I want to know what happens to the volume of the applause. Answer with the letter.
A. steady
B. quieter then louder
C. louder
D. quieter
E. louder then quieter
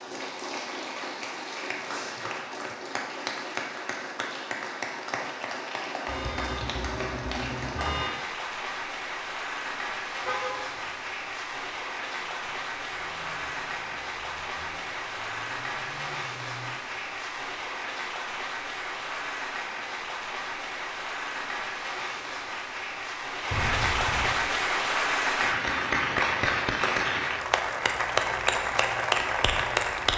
C.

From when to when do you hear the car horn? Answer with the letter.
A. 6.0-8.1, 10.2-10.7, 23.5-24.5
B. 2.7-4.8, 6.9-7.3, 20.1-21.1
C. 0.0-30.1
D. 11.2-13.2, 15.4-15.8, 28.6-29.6
A.